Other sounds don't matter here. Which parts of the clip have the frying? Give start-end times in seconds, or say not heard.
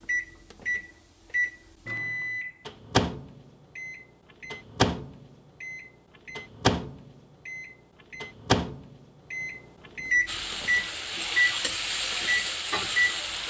10.2-13.4.